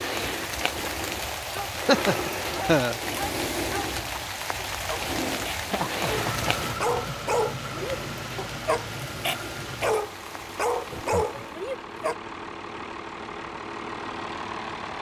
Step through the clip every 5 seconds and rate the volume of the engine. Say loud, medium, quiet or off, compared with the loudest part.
off, loud, loud.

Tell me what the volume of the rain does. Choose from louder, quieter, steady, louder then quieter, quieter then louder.
quieter.